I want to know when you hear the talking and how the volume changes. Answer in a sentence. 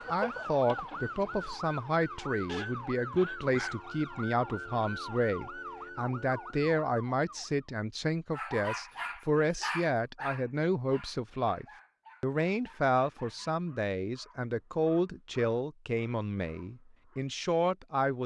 You can hear the talking from 0.1 to 18.2 s, at a steady volume.